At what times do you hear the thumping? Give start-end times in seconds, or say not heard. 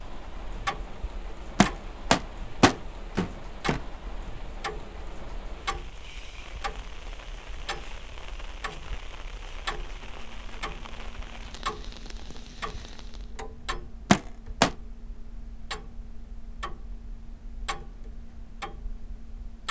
1.6-3.8, 14.1-14.7.